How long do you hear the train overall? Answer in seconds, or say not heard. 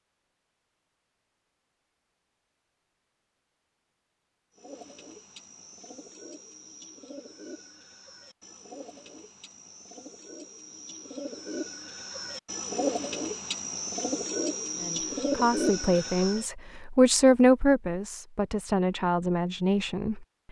not heard.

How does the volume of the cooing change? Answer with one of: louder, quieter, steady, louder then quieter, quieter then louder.
louder.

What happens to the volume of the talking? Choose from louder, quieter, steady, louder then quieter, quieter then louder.
louder then quieter.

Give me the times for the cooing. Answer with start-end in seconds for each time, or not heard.
4.5-16.5.